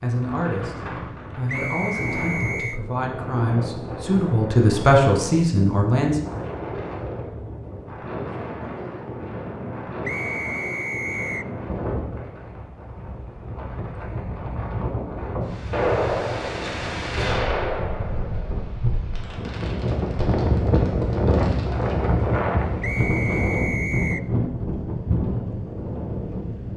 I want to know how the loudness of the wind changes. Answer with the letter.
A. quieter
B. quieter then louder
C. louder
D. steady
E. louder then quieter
C.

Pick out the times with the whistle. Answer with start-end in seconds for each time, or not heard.
1.4-2.8, 10.0-11.5, 22.8-24.2.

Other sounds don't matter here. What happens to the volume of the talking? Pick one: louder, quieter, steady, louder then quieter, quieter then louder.
louder.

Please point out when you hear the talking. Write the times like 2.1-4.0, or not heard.
0.0-6.2.